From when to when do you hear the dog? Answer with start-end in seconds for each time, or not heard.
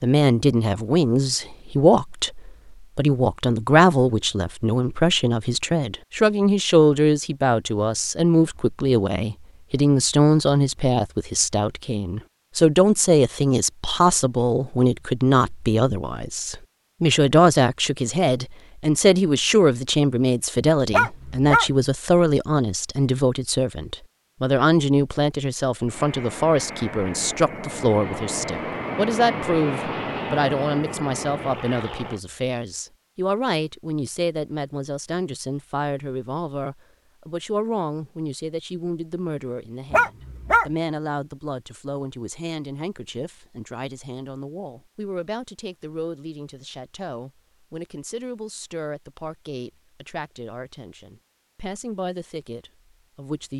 20.9-21.7, 39.9-40.7.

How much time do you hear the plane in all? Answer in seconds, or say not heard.
6 s.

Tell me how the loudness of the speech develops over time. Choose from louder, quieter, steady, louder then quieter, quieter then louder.
quieter.